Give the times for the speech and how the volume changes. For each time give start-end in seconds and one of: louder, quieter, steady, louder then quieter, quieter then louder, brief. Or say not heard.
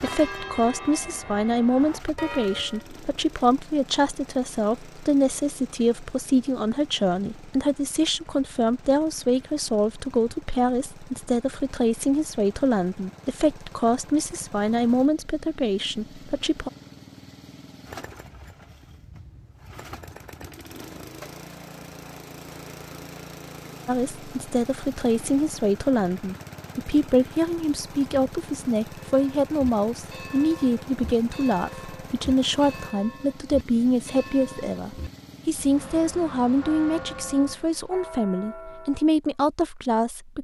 0.0-16.7 steady
23.9-40.3 steady.